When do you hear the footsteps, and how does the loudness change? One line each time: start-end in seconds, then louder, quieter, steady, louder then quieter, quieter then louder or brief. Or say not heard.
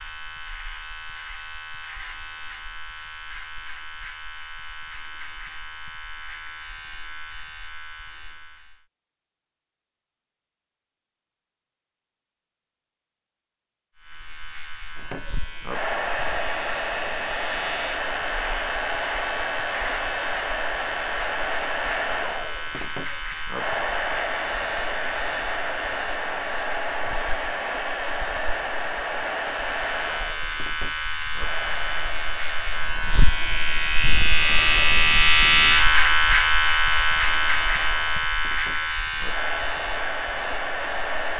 not heard.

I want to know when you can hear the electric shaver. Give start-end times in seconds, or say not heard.
0.0-8.8, 13.9-41.3.